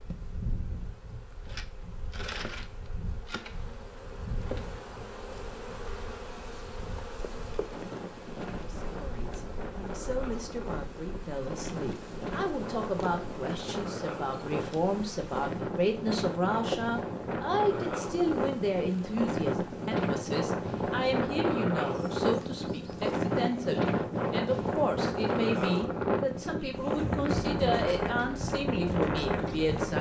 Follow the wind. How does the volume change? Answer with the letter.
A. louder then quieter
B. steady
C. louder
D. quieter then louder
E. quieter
C.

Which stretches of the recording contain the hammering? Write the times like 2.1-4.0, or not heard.
not heard.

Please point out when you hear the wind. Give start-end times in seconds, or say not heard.
0.0-29.9.